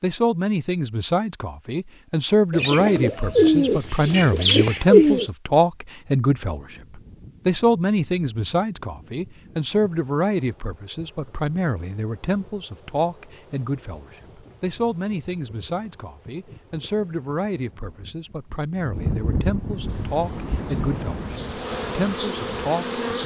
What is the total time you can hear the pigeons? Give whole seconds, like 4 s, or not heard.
3 s.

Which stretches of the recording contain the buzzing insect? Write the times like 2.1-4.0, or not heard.
19.9-23.2.